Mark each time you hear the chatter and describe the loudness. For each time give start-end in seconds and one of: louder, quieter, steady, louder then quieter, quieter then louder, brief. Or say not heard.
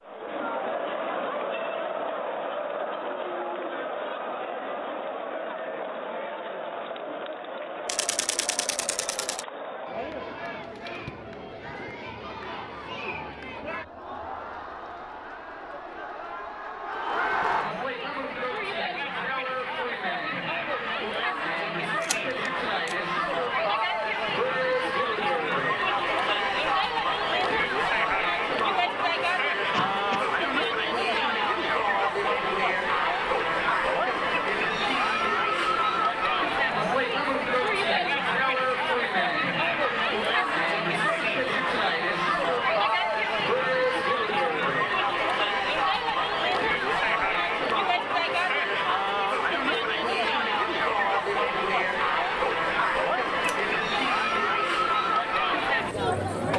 0.0-56.5 louder.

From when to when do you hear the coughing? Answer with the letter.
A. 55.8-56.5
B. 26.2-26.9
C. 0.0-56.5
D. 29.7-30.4
D.